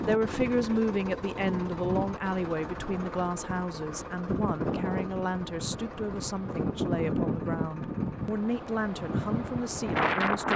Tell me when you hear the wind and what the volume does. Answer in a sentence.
The wind can be heard from 0.0 to 10.5 s, getting quieter then louder.